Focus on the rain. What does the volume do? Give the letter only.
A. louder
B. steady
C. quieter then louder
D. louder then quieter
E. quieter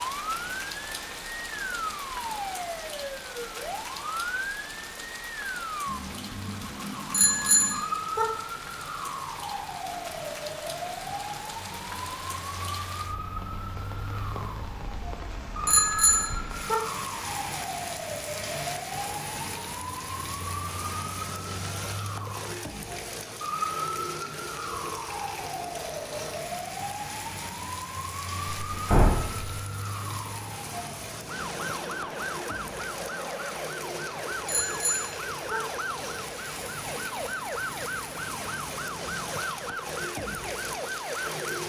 B.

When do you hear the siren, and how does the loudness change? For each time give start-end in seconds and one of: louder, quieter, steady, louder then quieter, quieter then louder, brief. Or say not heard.
0.0-41.6 steady.